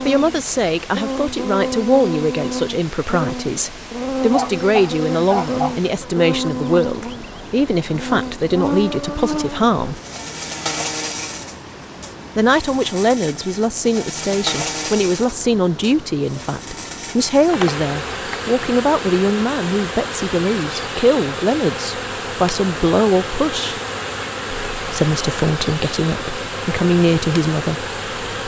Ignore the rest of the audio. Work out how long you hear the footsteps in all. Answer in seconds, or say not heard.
not heard.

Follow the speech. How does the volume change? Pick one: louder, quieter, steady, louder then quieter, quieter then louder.
steady.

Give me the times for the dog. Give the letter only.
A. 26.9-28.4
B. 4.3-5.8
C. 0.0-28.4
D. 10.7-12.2
B.